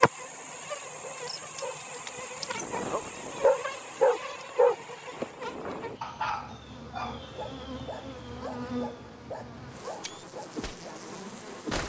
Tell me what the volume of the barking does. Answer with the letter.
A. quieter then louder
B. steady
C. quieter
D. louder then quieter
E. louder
D.